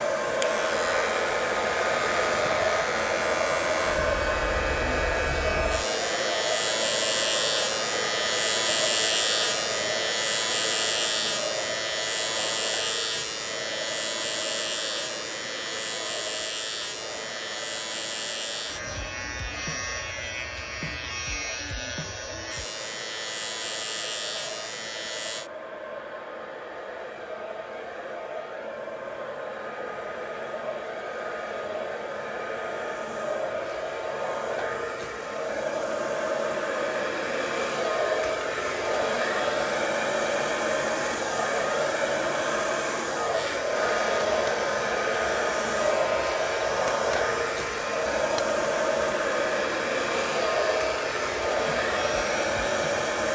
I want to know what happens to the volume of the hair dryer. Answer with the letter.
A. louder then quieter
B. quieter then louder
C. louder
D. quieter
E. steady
B.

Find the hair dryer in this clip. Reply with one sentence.
The hair dryer can be heard from 0.0 to 53.2 s.